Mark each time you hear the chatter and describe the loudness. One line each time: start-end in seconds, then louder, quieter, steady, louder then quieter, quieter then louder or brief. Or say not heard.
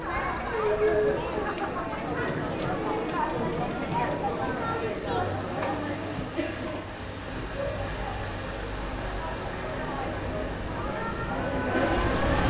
0.0-12.4 quieter then louder.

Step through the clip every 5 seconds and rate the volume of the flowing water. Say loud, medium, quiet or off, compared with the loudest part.
medium, medium, loud.